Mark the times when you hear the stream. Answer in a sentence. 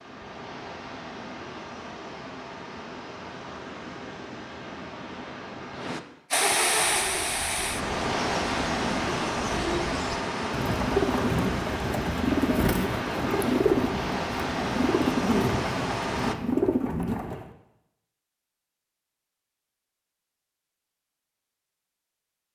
The stream can be heard from 0.0 to 16.4 s.